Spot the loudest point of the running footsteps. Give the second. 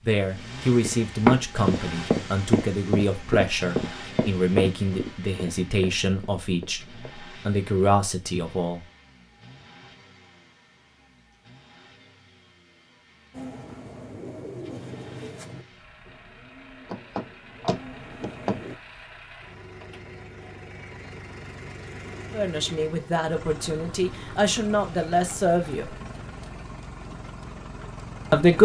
1 s.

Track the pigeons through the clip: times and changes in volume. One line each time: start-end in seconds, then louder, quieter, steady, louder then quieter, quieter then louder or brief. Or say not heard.
13.3-18.8 quieter then louder.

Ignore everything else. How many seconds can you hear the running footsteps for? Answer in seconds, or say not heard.
6 s.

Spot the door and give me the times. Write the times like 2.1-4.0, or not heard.
16.9-18.6.